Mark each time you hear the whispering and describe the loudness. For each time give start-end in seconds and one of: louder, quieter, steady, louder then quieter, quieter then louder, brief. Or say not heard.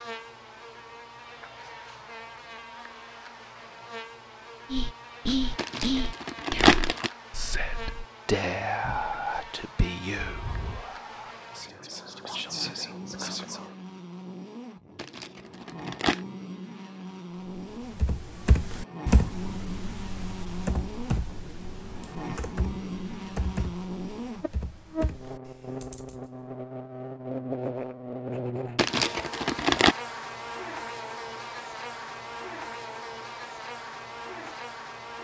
4.7-13.8 quieter.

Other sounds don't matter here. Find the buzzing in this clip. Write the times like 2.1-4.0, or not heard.
0.0-35.2.